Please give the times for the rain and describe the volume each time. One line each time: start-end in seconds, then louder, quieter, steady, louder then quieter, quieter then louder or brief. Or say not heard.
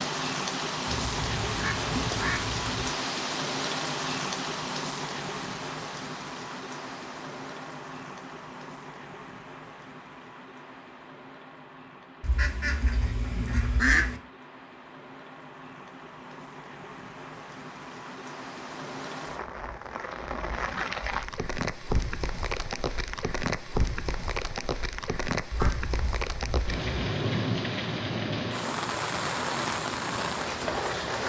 0.0-31.2 quieter then louder.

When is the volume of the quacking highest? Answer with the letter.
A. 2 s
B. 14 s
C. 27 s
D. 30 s
B.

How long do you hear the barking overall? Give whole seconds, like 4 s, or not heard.
not heard.